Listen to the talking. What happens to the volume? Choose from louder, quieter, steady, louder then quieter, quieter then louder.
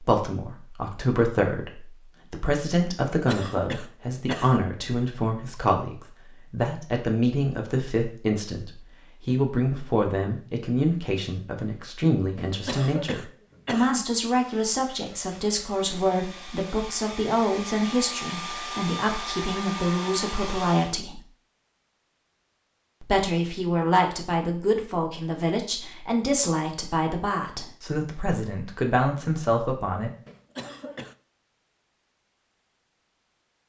steady.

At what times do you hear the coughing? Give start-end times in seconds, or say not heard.
3.1-4.7, 12.3-14.1, 30.2-31.1.